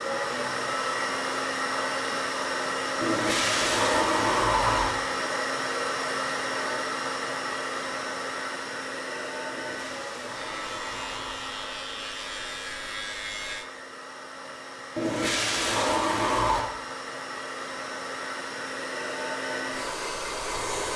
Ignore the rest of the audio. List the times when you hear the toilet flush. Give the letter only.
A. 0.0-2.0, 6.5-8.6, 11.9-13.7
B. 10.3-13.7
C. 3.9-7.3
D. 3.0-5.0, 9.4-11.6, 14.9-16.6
D.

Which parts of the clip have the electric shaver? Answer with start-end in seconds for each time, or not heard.
10.3-13.7.